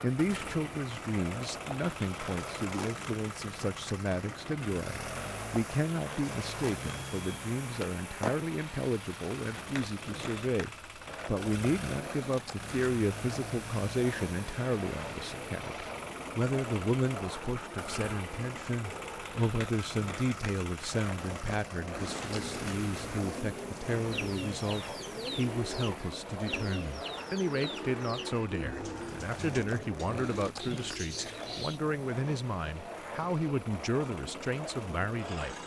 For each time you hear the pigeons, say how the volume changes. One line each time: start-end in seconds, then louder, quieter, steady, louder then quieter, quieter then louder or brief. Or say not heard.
21.9-31.8 steady.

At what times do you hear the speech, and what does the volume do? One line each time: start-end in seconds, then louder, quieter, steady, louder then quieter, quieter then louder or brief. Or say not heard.
0.0-35.6 steady.